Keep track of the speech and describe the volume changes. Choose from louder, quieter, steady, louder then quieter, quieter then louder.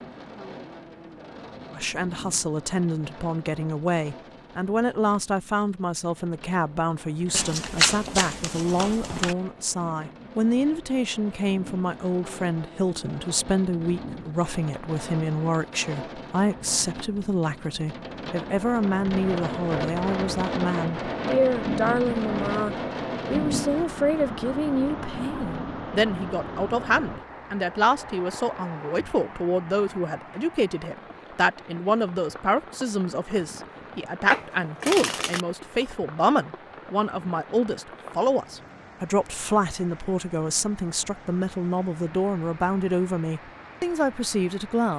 steady.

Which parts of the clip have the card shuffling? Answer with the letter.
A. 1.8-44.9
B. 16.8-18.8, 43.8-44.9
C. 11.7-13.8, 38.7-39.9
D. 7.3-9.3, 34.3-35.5
D.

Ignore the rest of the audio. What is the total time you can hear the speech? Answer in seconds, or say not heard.
43 s.